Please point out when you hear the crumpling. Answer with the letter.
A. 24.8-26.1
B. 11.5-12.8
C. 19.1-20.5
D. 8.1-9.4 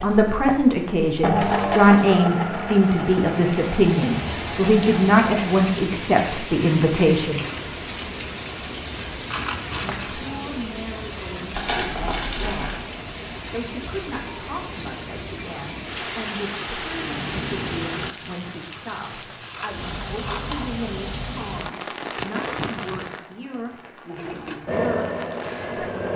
B.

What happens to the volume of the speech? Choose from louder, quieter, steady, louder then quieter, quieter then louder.
quieter.